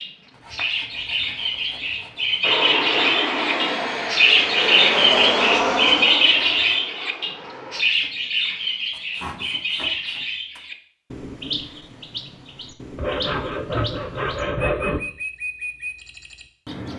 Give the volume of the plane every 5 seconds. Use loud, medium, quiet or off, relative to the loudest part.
loud, loud, off, off.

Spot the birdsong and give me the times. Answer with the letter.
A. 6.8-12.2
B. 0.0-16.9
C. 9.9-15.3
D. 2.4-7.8
B.